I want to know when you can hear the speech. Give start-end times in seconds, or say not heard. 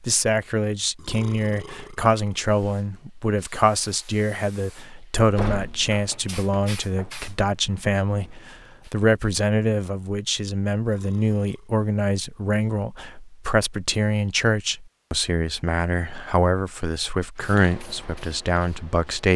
0.0-19.3.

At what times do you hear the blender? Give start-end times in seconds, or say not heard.
not heard.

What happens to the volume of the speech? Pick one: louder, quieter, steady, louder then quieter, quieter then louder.
steady.